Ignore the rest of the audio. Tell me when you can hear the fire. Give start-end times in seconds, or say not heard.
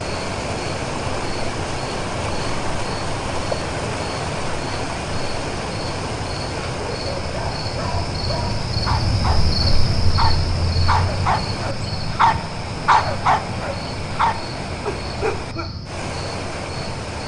not heard.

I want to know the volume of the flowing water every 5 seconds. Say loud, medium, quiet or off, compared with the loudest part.
loud, loud, medium, medium.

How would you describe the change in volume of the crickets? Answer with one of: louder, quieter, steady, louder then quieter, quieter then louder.
louder then quieter.